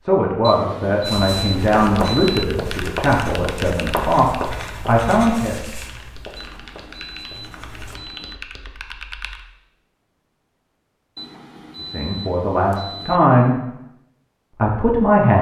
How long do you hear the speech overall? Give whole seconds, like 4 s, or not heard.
8 s.